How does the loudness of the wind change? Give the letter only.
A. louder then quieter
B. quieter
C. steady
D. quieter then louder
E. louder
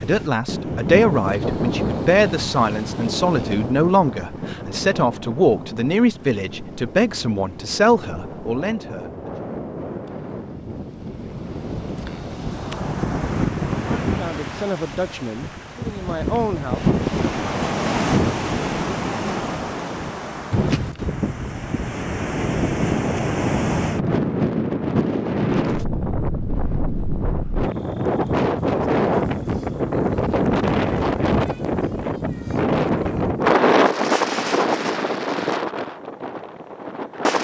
E.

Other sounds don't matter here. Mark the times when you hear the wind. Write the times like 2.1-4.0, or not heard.
0.0-37.3.